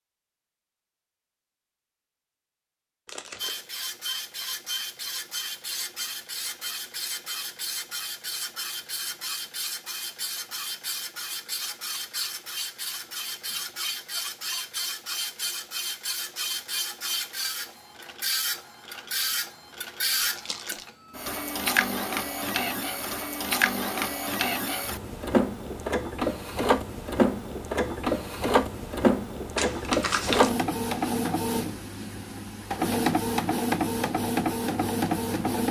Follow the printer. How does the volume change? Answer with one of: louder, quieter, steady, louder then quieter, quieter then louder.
louder.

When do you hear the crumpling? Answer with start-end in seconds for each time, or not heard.
3.0-3.7, 20.2-20.9, 29.6-30.5.